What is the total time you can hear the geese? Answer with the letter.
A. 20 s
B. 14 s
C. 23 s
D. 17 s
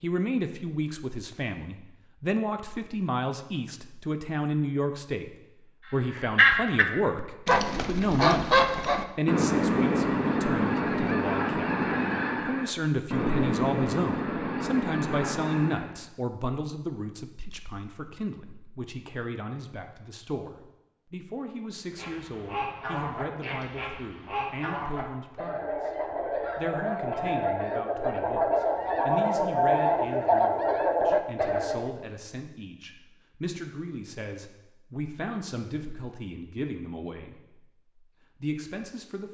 A.